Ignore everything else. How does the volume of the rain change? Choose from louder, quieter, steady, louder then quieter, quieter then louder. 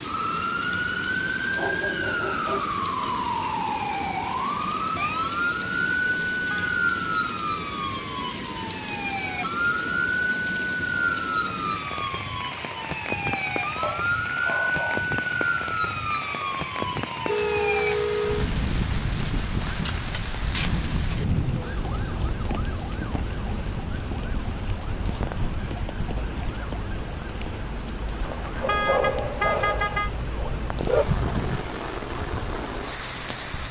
steady.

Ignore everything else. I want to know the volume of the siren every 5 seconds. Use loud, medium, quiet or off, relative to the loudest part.
loud, loud, loud, loud, medium, medium, medium.